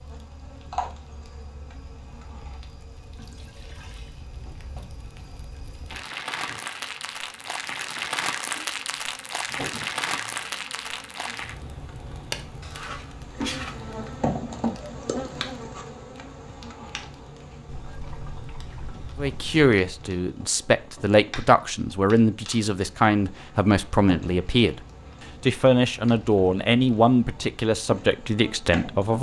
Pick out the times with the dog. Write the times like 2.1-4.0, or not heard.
12.6-14.1.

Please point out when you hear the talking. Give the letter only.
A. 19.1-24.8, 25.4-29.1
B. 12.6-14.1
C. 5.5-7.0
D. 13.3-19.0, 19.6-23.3
A.